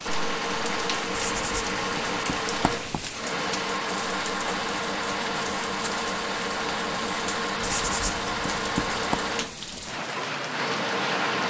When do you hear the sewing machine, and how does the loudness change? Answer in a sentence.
You can hear the sewing machine from 0.1 to 11.4 s, at a steady volume.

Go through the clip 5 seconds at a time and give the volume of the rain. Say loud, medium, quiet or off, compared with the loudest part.
medium, medium, loud.